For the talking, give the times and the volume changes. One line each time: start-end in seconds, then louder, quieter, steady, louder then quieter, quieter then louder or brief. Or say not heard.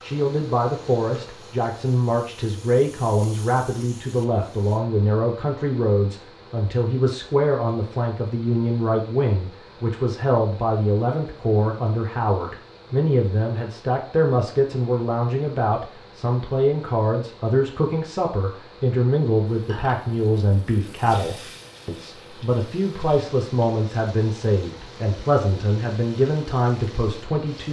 0.0-27.6 steady.